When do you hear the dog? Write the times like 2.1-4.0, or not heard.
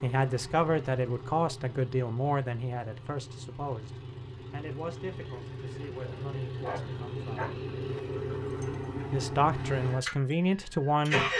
6.0-7.5.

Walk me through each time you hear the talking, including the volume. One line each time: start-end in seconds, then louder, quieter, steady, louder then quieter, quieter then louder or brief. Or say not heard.
0.0-7.5 quieter
9.1-11.2 brief.